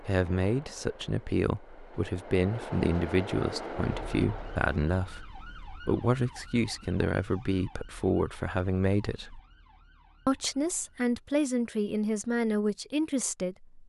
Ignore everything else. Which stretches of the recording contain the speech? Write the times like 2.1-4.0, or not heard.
0.0-9.4, 10.2-13.8.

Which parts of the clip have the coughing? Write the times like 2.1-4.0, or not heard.
not heard.